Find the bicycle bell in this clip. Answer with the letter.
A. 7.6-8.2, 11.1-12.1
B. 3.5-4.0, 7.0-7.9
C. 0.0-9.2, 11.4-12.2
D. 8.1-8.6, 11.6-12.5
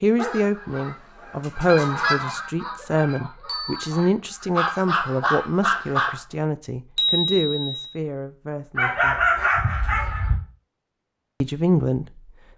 B.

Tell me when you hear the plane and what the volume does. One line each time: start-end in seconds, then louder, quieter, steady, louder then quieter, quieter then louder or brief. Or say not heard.
not heard.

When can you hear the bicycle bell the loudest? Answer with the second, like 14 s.
7 s.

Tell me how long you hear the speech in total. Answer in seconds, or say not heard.
10 s.